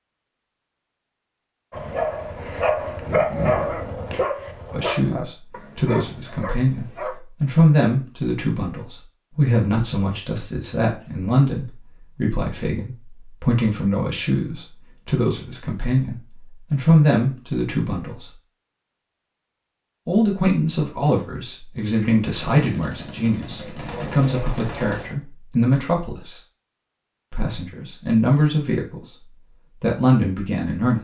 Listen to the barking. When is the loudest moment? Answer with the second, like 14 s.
3 s.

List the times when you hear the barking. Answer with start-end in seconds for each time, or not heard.
1.7-7.2.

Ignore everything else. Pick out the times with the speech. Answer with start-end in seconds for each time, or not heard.
4.7-18.3, 20.1-26.4, 27.3-30.9.